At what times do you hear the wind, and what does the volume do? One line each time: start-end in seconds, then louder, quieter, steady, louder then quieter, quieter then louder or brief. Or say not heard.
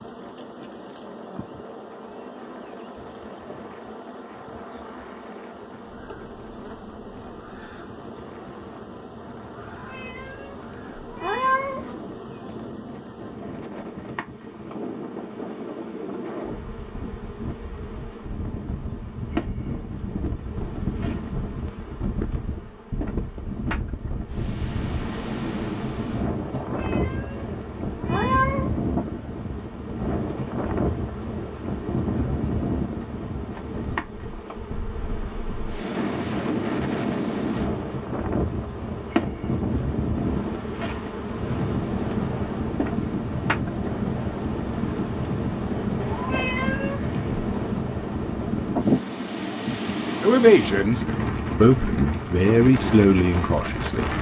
0.0-54.1 louder.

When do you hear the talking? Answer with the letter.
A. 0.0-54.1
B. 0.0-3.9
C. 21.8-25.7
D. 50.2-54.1
D.